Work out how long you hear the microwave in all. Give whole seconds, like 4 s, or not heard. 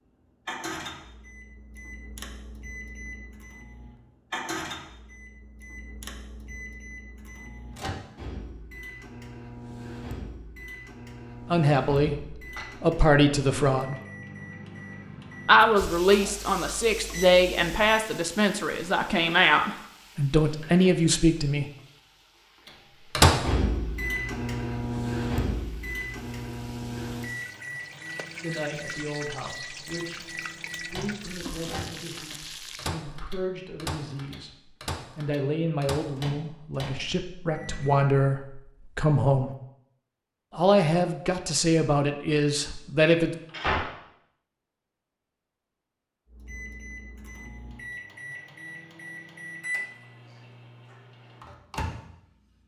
39 s.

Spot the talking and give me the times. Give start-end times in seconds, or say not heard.
11.5-13.9, 15.4-21.6, 28.4-39.5, 40.5-43.4.